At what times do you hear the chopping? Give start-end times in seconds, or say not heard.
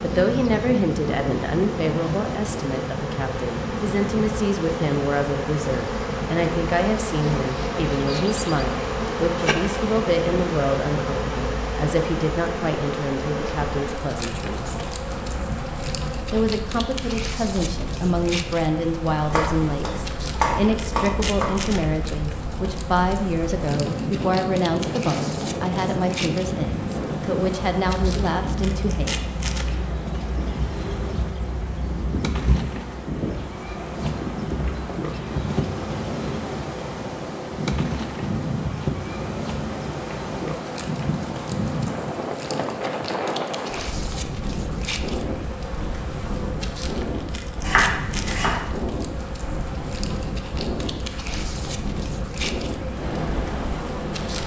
19.3-21.6, 47.6-48.6.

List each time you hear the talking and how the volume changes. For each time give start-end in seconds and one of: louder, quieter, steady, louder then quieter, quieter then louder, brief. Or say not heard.
0.0-14.8 steady
16.3-29.2 steady.